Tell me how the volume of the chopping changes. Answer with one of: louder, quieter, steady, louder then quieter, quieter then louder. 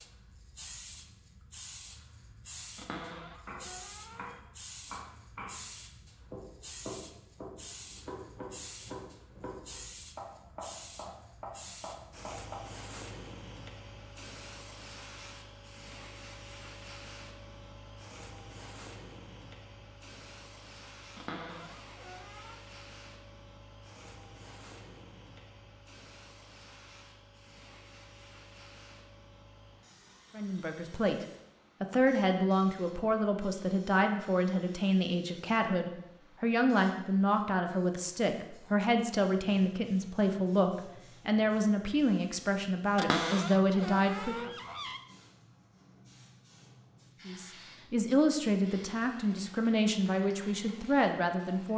steady.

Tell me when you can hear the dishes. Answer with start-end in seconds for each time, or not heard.
not heard.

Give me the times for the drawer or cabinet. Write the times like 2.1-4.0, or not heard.
2.8-4.4, 21.1-22.6, 43.0-45.0.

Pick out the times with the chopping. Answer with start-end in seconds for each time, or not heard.
3.5-12.7.